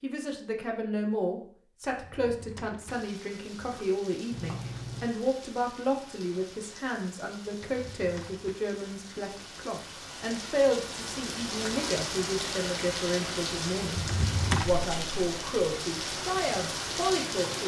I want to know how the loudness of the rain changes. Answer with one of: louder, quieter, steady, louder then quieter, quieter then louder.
louder.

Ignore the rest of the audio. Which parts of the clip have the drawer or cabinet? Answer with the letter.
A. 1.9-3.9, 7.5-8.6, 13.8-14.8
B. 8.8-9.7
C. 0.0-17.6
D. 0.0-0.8
A.